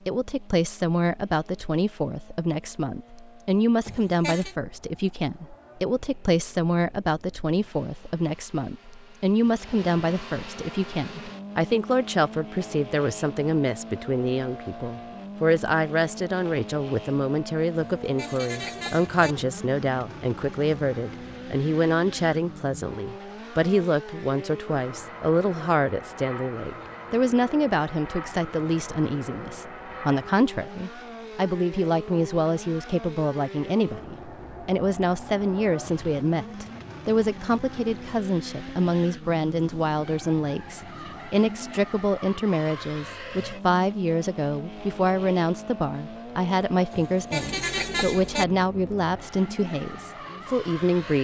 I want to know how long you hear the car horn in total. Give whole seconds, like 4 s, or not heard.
4 s.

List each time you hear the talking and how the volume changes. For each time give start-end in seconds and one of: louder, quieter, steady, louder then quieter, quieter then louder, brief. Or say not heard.
0.1-51.1 steady.